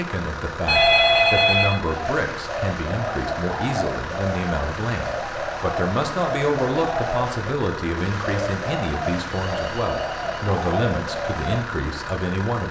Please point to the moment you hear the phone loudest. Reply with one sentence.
The loudest moment of the phone is at 1 second.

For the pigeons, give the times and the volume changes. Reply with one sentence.
You can hear the pigeons from 1.9 to 11.7 s, at a steady volume.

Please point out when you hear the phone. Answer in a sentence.
You can hear the phone from 0.7 to 1.8 s and from 9.2 to 10.6 s.